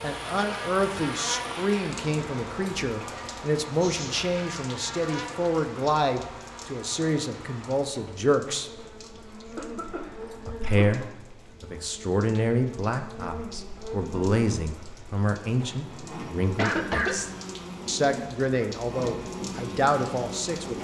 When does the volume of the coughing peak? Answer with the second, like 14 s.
17 s.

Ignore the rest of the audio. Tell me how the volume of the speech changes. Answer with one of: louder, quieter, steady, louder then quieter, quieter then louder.
steady.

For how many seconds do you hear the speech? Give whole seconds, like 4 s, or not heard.
19 s.